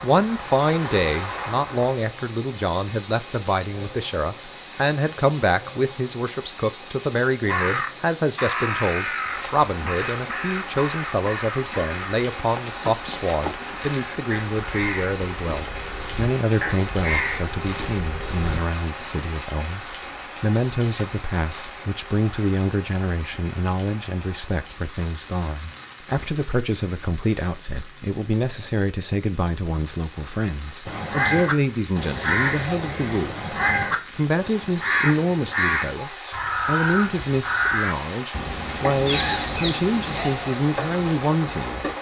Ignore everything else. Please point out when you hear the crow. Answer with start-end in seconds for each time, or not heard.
7.5-18.6, 30.9-41.9.